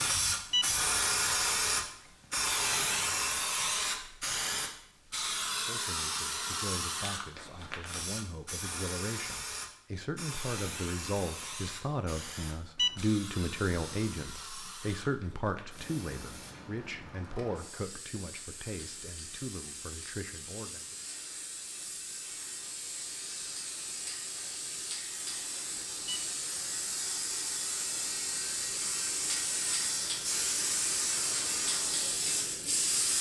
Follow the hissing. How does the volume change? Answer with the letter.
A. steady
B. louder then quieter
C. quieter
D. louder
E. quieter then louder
E.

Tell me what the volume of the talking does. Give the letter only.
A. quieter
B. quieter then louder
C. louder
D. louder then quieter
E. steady
D.